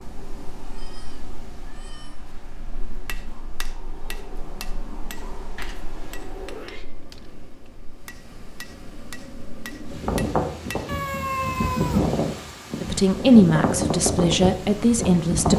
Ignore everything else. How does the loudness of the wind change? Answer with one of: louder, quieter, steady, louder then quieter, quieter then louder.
louder.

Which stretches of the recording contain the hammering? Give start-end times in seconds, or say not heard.
3.0-10.9.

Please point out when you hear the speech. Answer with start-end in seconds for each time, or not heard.
12.8-15.5.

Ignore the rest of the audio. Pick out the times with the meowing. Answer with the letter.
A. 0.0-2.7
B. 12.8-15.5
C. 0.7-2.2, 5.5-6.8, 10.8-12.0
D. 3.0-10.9
C.